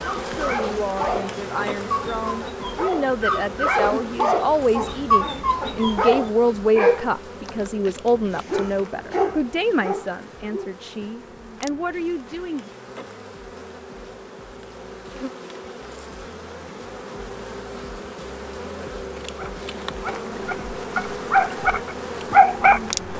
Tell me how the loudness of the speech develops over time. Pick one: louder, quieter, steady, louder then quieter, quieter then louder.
louder then quieter.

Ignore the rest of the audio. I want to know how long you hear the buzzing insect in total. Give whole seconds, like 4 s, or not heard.
23 s.